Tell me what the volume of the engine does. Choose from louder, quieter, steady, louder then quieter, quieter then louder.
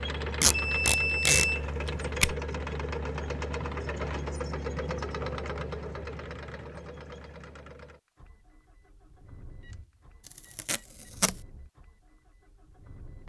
quieter.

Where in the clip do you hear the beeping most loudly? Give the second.
1 s.